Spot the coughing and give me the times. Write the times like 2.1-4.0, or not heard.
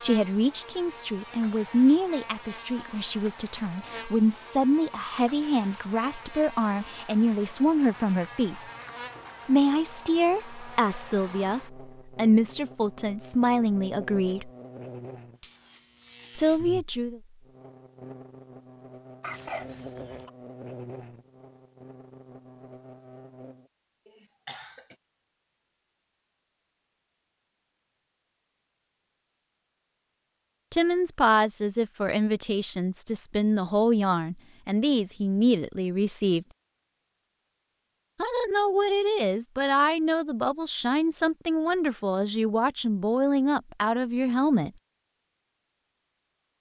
19.2-20.3, 24.1-24.9.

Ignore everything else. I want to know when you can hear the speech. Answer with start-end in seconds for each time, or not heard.
0.0-8.7, 9.4-14.5, 16.4-17.2, 30.7-36.5, 38.2-44.7.